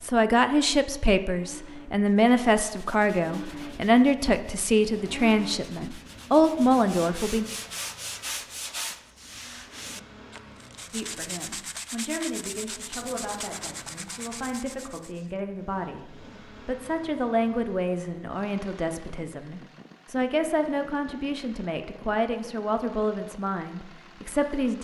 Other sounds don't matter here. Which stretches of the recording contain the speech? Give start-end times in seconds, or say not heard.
0.0-7.5, 10.9-24.7.